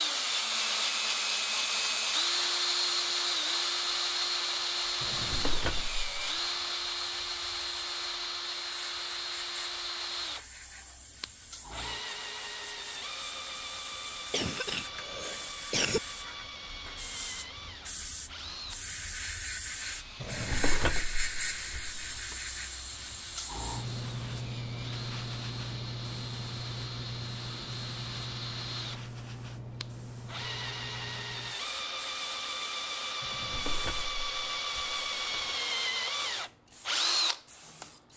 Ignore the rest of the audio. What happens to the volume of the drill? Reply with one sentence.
The volume of the drill goes down, then up.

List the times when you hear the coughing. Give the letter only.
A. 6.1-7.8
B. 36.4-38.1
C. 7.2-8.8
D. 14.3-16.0
D.